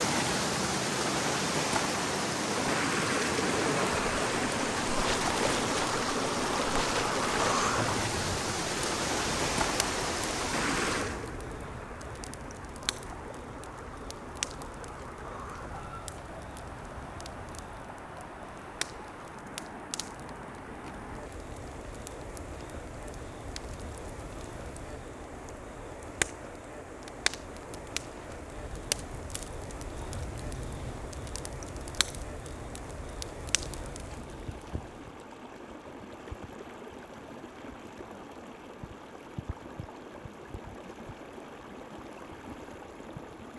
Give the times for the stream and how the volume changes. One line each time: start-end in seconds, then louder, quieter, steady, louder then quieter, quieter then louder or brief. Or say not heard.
0.0-43.5 quieter.